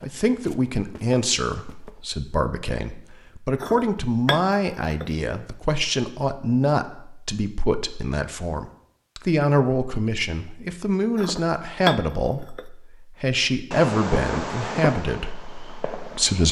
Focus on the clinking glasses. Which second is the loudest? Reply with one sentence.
The loudest moment of the clinking glasses is at 12 seconds.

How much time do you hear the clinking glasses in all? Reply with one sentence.
You can hear the clinking glasses for 3 seconds altogether.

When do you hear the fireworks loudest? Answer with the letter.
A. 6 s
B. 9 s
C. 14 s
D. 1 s
C.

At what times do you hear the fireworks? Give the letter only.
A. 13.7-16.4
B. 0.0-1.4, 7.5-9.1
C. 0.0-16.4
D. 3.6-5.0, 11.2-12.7
A.